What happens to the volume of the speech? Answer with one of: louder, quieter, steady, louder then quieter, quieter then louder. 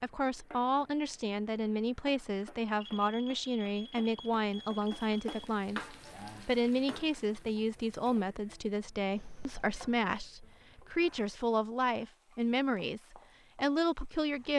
steady.